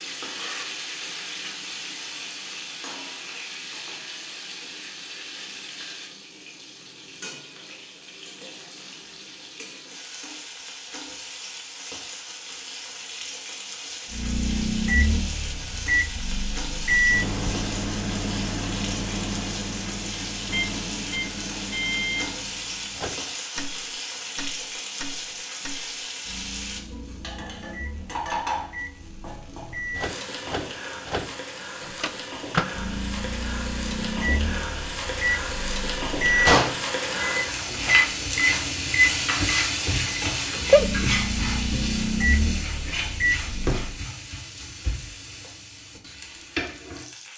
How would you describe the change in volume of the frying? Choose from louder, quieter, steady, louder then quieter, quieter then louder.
louder.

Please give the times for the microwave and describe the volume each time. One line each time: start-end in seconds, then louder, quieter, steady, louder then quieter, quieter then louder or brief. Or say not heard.
14.1-44.0 quieter then louder.